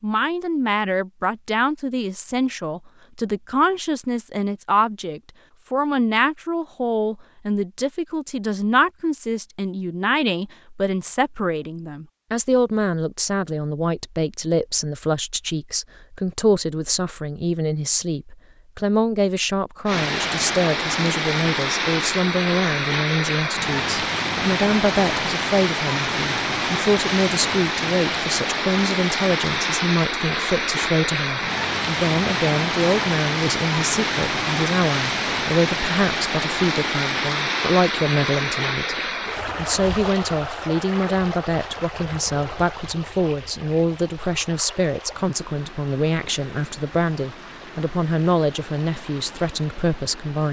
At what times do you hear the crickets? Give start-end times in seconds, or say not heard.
not heard.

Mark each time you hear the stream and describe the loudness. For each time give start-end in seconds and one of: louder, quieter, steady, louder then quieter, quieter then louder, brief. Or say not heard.
19.9-50.4 quieter.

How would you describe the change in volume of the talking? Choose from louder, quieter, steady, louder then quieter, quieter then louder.
steady.